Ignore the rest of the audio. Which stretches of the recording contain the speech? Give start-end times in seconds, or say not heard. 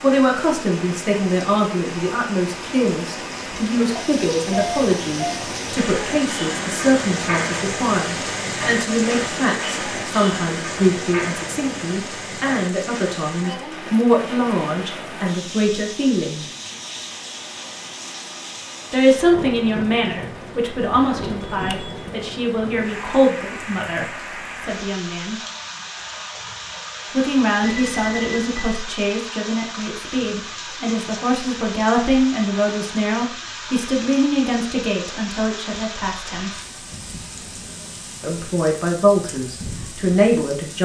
0.0-16.4, 18.9-25.4, 27.1-36.5, 38.2-40.8.